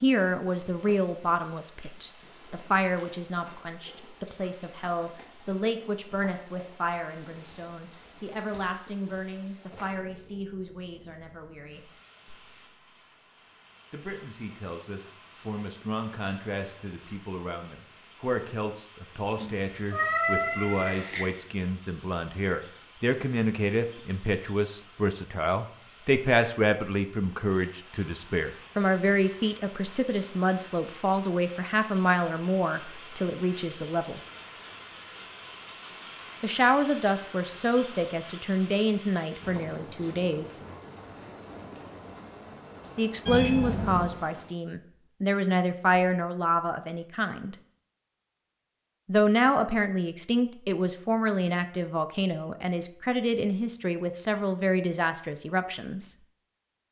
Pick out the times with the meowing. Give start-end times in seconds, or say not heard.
19.4-21.2, 43.2-44.1.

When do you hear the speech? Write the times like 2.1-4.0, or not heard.
0.0-11.8, 13.9-34.2, 36.4-40.6, 43.0-47.5, 49.0-56.1.